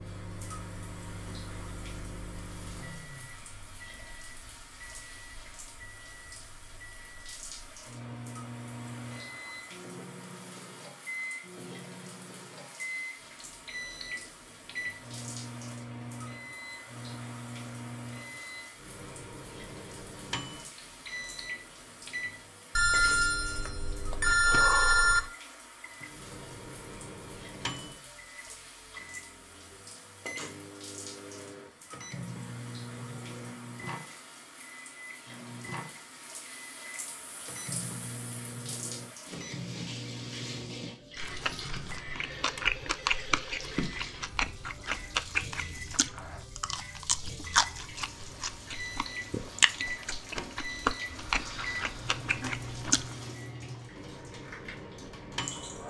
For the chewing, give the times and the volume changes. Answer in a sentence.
You can hear the chewing from 41.2 to 53.1 s, at a steady volume.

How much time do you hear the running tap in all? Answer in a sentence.
The running tap can be heard for 56 seconds in total.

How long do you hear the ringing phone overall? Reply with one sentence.
The ringing phone can be heard for 4 seconds in total.